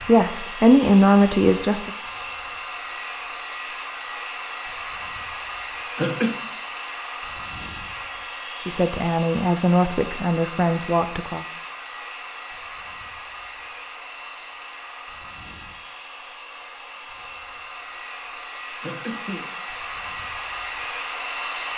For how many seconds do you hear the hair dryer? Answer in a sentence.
The hair dryer can be heard for 22 seconds in total.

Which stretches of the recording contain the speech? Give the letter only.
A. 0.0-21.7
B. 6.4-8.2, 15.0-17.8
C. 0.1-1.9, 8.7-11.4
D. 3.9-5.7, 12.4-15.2
C.